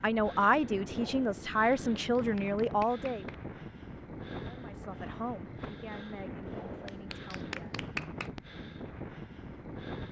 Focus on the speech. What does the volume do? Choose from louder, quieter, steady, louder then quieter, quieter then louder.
quieter.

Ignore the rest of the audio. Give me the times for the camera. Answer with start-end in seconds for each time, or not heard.
not heard.